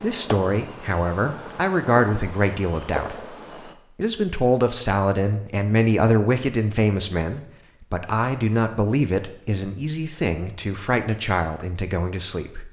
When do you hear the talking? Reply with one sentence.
You can hear the talking from 0.0 to 3.4 s and from 4.0 to 12.6 s.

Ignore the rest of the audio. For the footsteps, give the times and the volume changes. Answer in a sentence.
The footsteps can't be heard in this clip.